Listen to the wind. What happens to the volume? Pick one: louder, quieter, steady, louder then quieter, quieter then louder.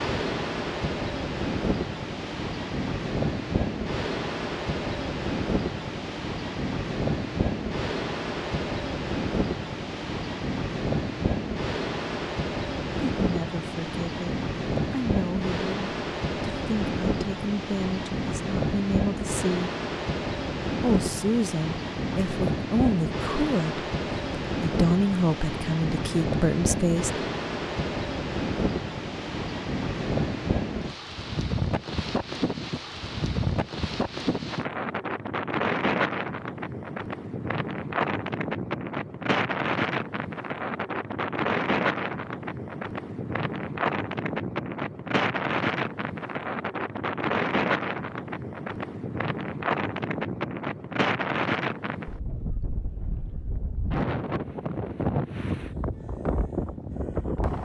steady.